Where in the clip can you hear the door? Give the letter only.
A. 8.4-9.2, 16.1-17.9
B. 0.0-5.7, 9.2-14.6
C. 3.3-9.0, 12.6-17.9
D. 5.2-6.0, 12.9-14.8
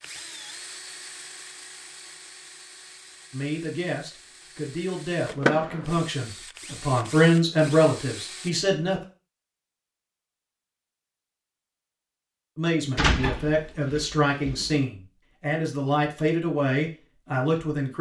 D.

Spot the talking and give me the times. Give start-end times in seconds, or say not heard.
3.3-9.0, 12.6-17.9.